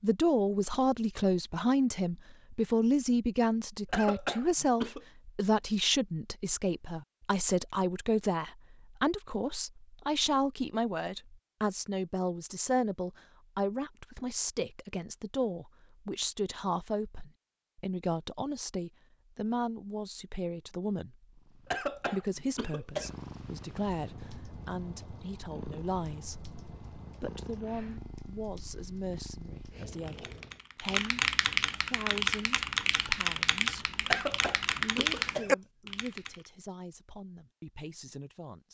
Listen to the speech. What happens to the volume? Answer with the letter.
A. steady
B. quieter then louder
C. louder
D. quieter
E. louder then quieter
D.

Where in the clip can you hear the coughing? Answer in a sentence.
You can hear the coughing from 3.9 to 5.0 s, from 21.6 to 23.1 s and from 34.0 to 35.5 s.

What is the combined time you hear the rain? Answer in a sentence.
The rain can't be heard in this clip.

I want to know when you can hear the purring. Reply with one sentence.
You can hear the purring from 21.2 to 30.6 s.